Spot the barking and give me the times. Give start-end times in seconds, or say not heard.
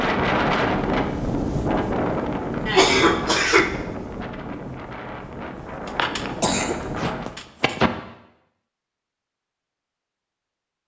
not heard.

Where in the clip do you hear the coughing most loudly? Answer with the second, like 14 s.
3 s.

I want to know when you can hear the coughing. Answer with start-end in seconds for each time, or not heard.
2.6-3.7, 5.8-7.9.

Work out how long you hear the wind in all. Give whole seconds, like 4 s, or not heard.
7 s.